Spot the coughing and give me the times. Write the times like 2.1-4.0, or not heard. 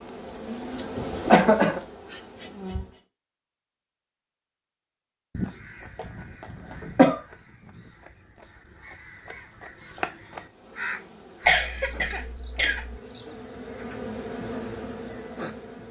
0.9-1.8, 6.8-7.2, 11.4-12.9.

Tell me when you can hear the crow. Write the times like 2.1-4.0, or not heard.
5.3-11.7.